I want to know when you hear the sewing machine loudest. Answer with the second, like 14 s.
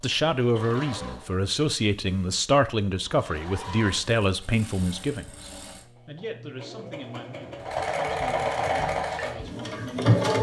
10 s.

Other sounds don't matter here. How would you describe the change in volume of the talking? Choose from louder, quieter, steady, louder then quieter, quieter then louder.
quieter.